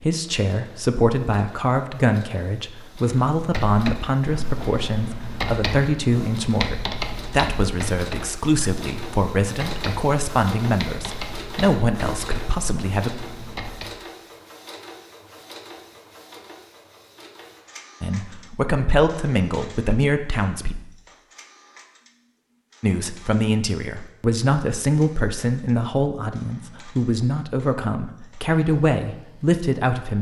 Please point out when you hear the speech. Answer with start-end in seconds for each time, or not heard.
0.0-13.1, 18.0-20.8, 22.8-30.1.